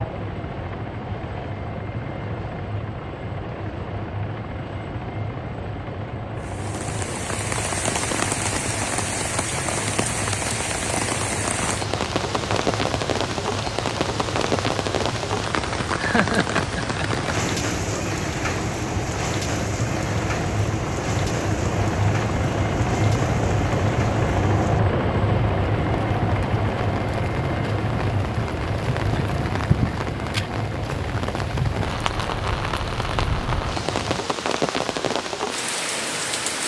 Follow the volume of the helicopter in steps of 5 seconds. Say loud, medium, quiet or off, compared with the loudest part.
medium, medium, medium, medium, loud, loud, medium, off.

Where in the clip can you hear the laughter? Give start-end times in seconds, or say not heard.
15.9-17.2.